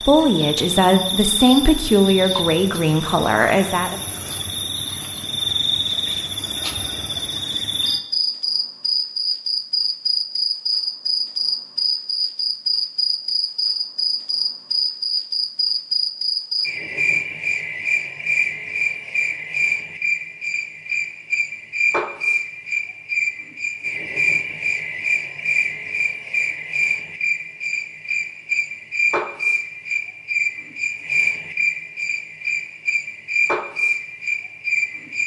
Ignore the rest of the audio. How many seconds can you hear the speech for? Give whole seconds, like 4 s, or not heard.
4 s.